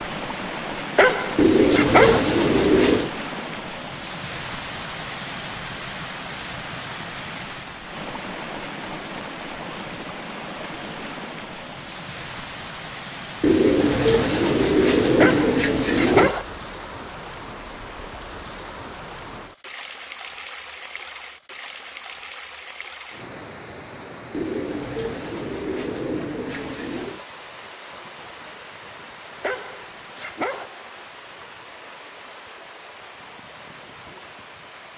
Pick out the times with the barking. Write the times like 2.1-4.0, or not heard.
0.9-2.2, 15.2-16.4, 29.4-30.7.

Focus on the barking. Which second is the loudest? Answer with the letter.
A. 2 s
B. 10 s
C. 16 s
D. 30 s
A.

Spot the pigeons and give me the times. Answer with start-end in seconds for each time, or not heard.
1.4-3.1, 13.4-16.4, 24.3-27.2.